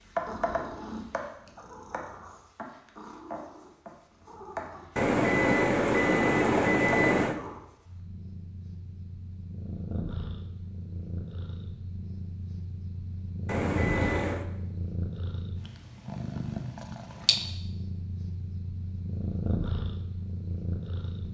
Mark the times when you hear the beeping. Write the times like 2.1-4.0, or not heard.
5.0-7.3, 13.4-14.4.